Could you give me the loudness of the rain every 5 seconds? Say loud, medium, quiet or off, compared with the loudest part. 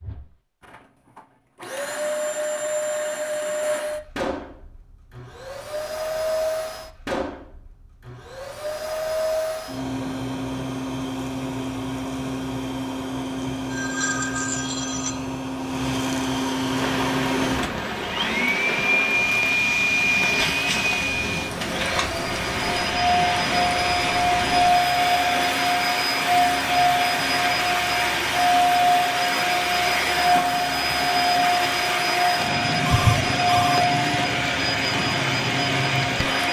off, off, off, loud, loud, loud, loud, loud.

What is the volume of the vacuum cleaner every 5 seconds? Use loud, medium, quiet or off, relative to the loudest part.
medium, medium, medium, loud, loud, loud, loud, loud.